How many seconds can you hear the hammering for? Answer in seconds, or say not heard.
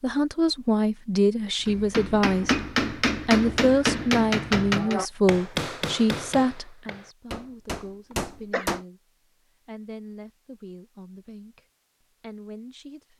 7 s.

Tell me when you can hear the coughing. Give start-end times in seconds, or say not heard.
8.1-8.7.